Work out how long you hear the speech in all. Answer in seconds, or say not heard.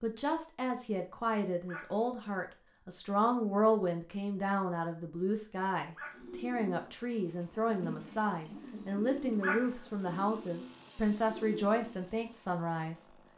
13 s.